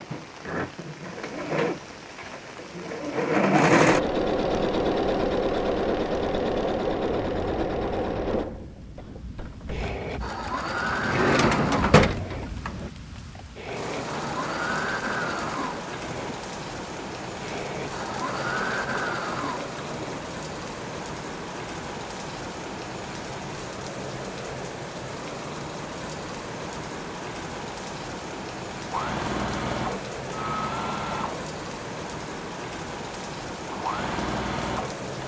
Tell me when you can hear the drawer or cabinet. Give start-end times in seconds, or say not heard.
10.9-12.9.